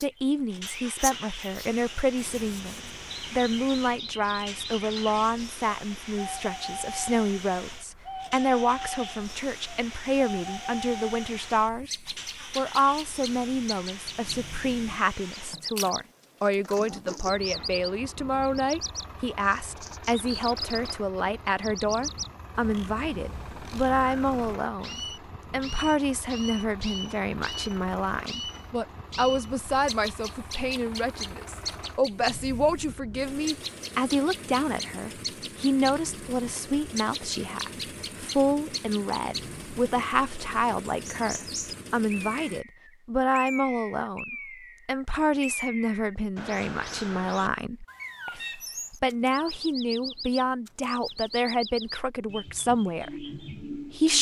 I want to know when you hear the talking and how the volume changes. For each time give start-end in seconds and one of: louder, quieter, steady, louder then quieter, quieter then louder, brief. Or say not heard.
0.0-11.9 steady
12.6-54.1 steady.